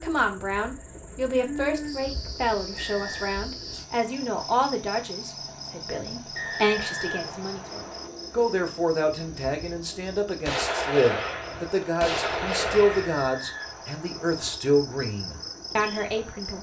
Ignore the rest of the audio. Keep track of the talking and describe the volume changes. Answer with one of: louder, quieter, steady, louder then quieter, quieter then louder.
steady.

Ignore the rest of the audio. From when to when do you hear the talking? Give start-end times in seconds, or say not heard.
0.0-16.5.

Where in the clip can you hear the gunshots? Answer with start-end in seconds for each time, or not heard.
10.4-13.1.